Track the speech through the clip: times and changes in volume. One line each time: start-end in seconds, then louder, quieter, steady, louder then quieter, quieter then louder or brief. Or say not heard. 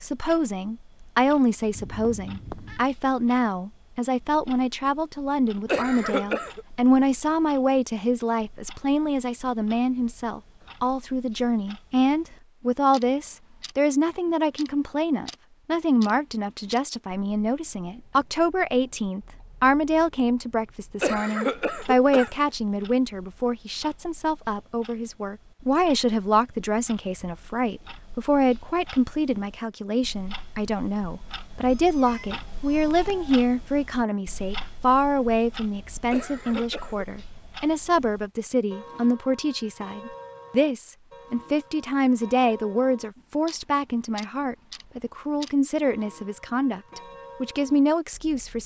0.0-48.6 steady.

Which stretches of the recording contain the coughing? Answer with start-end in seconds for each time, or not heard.
5.7-6.7, 21.0-22.3, 36.1-37.0.